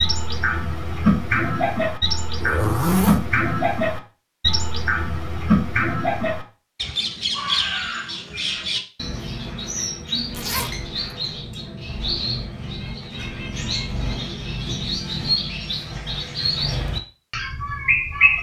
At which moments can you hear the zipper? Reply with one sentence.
You can hear the zipper from 2.4 to 3.2 s and from 10.3 to 10.8 s.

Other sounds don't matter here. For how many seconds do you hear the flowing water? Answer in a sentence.
The flowing water can't be heard in this clip.